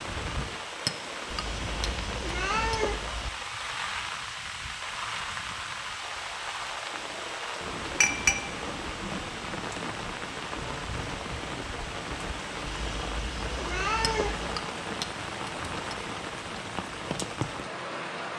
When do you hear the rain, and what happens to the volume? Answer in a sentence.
You can hear the rain from 0.0 to 18.3 s, at a steady volume.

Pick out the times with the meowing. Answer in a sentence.
You can hear the meowing from 1.6 to 3.3 s and from 12.7 to 14.5 s.